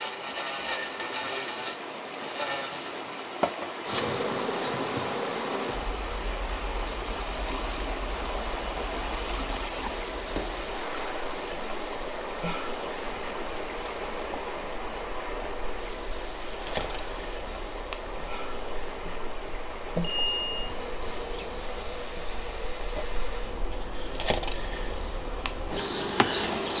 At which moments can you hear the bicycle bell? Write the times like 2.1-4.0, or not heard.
20.0-20.6.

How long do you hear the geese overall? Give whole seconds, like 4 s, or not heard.
not heard.